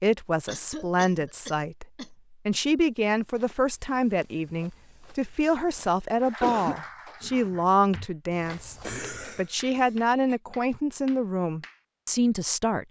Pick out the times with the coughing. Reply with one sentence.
The coughing can be heard from 0.5 to 2.1 s, from 6.2 to 6.8 s and from 8.8 to 10.3 s.